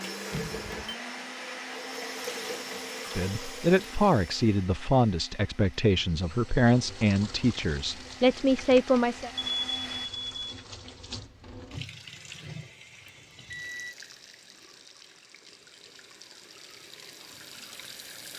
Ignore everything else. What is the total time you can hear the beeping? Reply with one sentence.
You can hear the beeping for 3 seconds altogether.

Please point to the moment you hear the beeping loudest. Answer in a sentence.
The loudest moment of the beeping is at 10 seconds.